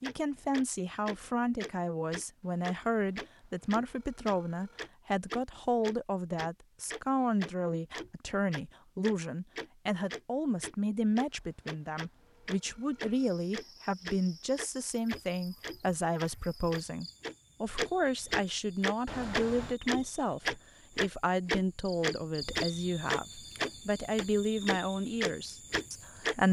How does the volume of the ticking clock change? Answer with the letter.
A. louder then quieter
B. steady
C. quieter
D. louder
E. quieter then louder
D.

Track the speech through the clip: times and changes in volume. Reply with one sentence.
You can hear the speech from 0.0 to 26.4 s, at a steady volume.